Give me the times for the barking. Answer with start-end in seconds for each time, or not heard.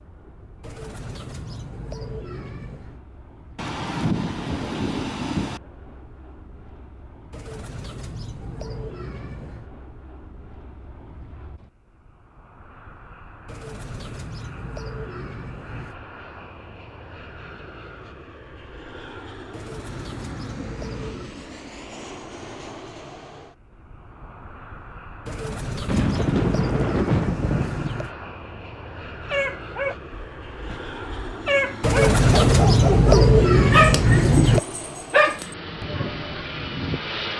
29.2-37.0.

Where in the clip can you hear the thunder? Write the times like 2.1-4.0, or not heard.
3.5-5.6, 25.9-27.9.